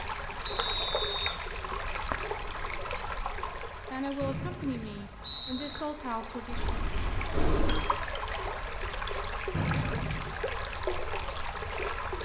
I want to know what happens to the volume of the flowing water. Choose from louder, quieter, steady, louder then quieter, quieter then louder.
quieter then louder.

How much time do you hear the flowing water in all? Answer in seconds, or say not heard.
12 s.